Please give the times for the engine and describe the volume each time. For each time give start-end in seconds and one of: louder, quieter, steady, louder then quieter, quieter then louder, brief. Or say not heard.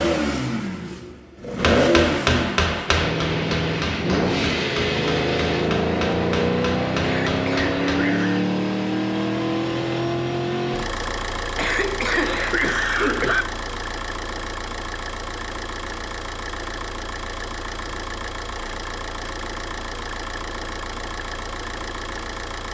0.0-22.6 quieter.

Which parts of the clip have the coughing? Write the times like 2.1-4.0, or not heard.
7.0-8.4, 11.6-13.4.